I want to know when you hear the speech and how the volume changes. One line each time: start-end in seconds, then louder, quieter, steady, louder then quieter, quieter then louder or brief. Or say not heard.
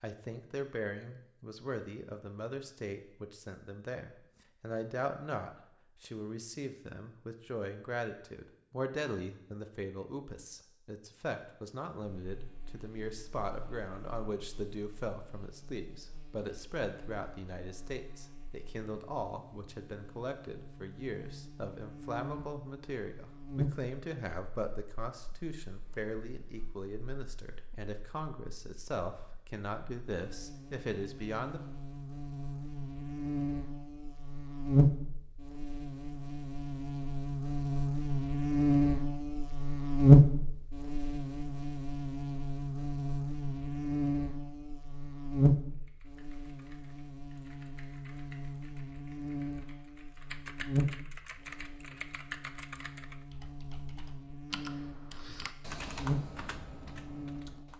0.0-31.6 steady.